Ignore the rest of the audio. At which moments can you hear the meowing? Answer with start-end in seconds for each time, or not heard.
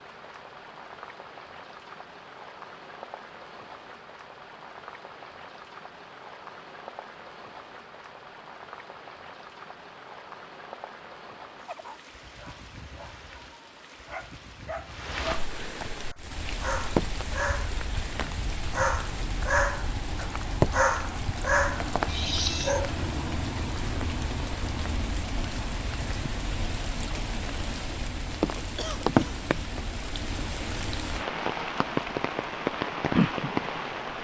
not heard.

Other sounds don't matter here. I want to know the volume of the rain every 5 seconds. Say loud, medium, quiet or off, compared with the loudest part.
quiet, quiet, quiet, medium, loud, loud, loud.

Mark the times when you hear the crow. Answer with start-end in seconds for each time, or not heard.
not heard.